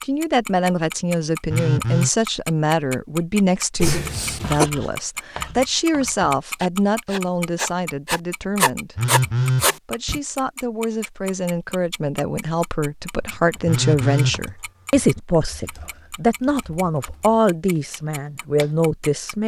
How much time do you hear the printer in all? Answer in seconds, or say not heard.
not heard.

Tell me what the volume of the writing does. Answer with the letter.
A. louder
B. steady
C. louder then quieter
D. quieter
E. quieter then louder
A.